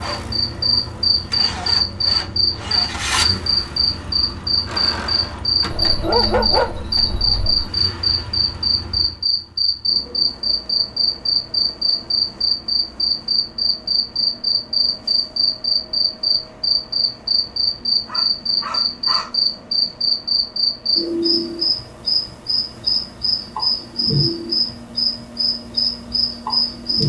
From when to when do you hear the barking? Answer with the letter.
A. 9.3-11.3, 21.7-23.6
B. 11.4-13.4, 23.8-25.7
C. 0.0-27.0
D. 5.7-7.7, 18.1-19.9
D.